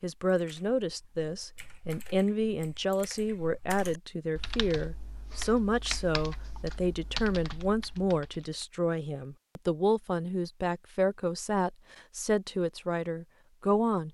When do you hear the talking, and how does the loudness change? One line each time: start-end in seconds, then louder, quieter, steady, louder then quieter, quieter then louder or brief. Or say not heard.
0.0-14.0 steady.